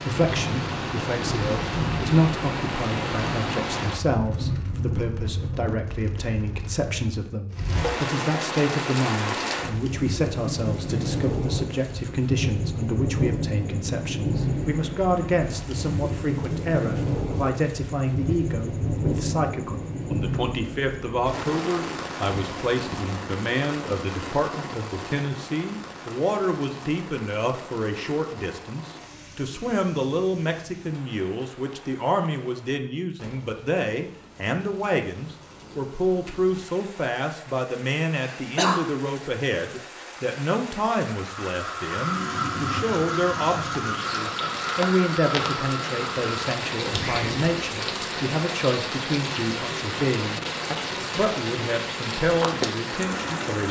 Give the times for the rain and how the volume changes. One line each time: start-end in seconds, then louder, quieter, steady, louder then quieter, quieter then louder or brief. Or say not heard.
0.0-53.6 quieter then louder.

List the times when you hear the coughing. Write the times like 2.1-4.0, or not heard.
22.3-23.0, 38.1-38.9.